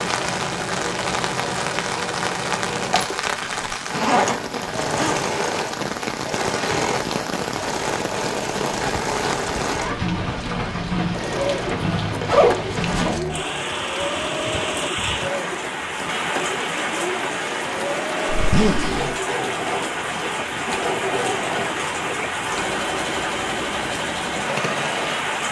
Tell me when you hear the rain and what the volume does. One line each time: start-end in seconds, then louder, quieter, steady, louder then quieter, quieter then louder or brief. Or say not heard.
0.0-25.4 steady.